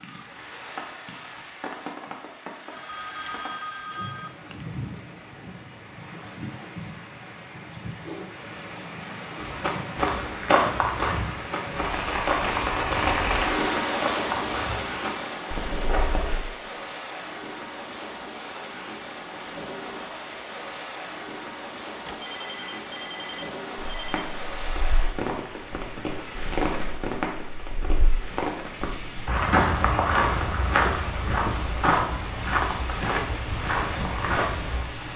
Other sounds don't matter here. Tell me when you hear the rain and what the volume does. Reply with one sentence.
You can hear the rain from 0.0 to 35.1 s, getting louder then quieter.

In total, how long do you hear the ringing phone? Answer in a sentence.
You can hear the ringing phone for 4 seconds altogether.